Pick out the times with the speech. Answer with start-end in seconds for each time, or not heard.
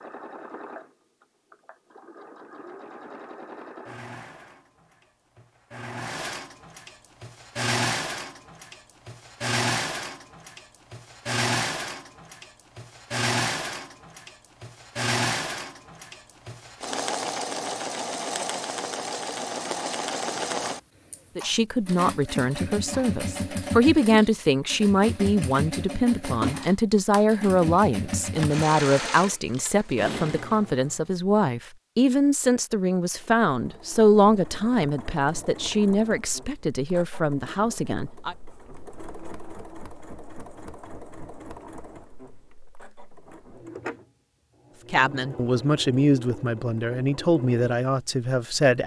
21.4-38.4, 44.9-48.8.